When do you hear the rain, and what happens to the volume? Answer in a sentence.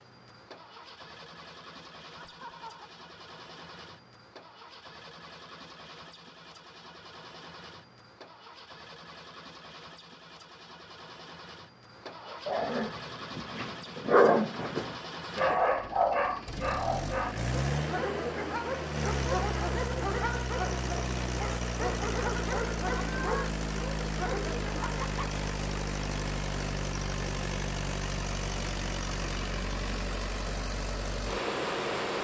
The rain can't be heard in this clip.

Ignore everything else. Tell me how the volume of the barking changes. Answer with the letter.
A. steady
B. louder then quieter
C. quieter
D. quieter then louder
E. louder
C.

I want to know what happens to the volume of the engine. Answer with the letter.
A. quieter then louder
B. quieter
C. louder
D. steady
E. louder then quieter
C.